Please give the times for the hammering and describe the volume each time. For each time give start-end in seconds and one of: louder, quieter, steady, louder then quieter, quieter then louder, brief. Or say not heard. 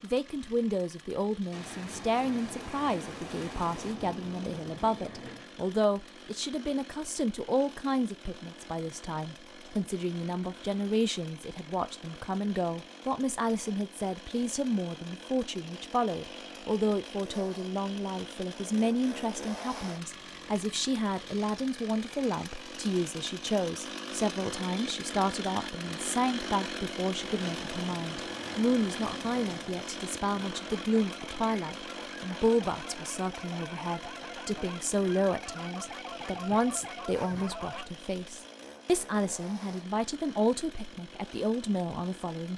not heard.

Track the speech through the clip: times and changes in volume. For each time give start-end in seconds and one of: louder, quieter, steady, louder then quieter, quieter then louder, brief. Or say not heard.
0.0-42.5 steady.